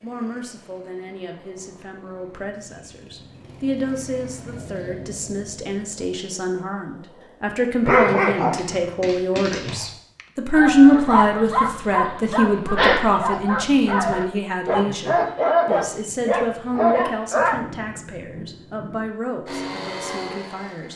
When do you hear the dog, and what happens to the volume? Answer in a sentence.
You can hear the dog from 7.8 to 17.6 s, getting louder.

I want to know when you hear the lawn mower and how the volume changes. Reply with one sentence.
The lawn mower can be heard from 0.0 to 7.4 s, getting louder then quieter; and briefly from 19.4 to 20.9 s.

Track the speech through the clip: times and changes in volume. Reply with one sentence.
The speech can be heard from 0.0 to 20.9 s, getting louder then quieter.